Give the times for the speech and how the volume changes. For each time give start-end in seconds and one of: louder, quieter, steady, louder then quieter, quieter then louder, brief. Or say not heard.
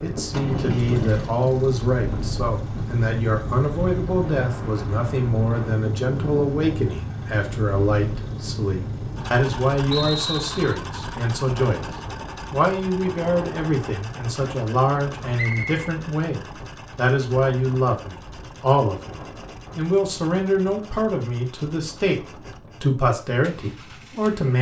0.0-24.5 steady.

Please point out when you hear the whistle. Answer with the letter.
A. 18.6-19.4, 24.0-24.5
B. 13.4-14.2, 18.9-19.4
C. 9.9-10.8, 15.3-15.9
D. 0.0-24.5
C.